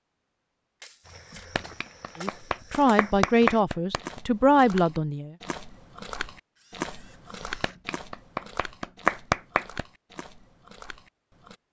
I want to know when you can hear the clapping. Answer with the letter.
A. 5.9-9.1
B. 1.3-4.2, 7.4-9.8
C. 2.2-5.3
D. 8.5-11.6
B.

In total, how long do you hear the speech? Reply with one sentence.
You can hear the speech for 3 seconds altogether.